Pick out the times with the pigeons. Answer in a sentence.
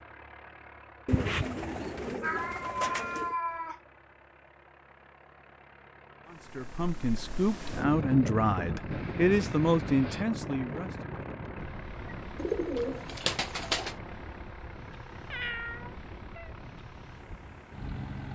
You can hear the pigeons from 1.1 to 3.4 s and from 12.3 to 13.9 s.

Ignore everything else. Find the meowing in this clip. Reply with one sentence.
The meowing can be heard from 2.2 to 3.8 s, from 8.9 to 10.2 s and from 15.3 to 16.5 s.